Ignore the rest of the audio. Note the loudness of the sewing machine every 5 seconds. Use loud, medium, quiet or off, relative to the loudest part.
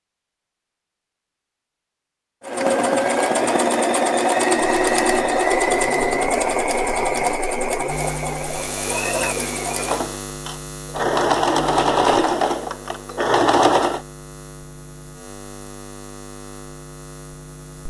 loud, loud, loud, off.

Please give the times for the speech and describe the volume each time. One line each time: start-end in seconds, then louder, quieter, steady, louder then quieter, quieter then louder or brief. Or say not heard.
not heard.